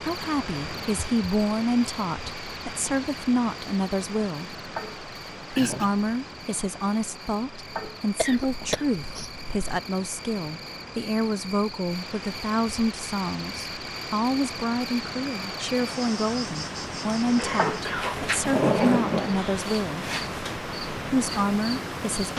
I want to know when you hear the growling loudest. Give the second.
19 s.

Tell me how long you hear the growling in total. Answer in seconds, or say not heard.
4 s.